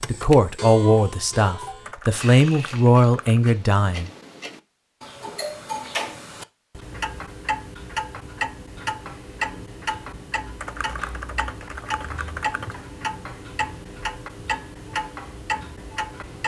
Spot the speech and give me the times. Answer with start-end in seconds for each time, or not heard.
0.1-4.1.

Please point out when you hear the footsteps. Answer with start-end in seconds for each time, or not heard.
not heard.